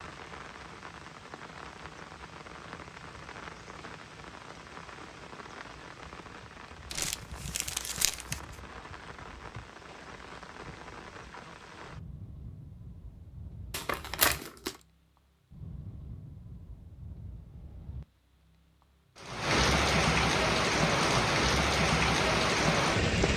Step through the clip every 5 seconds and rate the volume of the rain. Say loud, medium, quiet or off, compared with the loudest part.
quiet, quiet, quiet, medium, loud.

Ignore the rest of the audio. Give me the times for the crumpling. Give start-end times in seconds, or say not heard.
6.9-8.4, 13.7-14.8.